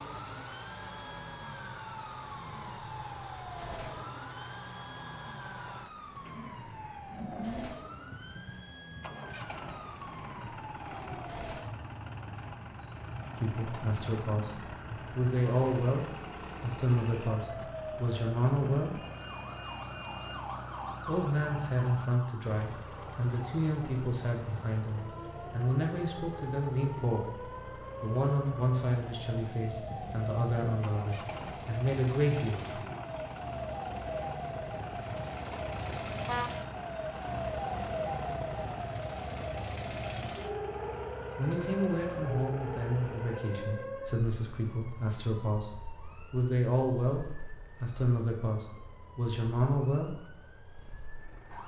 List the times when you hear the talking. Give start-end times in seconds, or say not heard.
13.4-19.0, 21.1-32.9, 41.4-50.1.